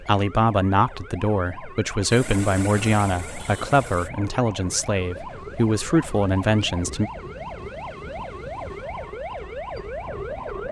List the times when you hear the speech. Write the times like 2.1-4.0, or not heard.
0.0-7.1.